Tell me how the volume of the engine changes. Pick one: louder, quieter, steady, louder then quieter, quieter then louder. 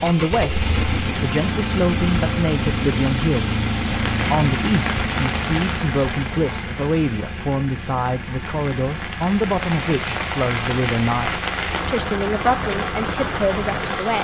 quieter.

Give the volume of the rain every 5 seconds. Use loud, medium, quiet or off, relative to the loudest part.
loud, medium, loud.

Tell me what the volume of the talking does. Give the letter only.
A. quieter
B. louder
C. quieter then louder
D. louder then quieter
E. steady
E.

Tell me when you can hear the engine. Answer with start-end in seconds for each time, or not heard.
0.0-14.0.